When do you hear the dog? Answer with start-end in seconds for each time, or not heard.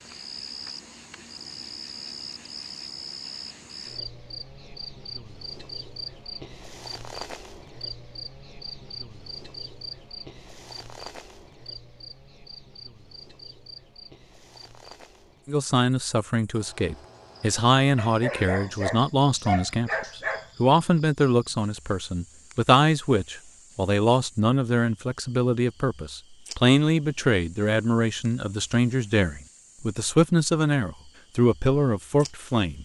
17.9-20.5.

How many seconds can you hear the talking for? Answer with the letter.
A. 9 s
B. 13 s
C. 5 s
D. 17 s
D.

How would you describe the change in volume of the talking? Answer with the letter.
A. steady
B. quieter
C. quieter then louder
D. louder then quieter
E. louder
A.